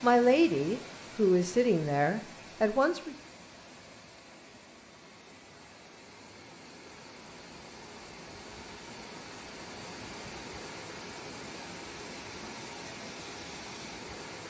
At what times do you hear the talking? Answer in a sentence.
The talking can be heard from 0.0 to 3.1 s.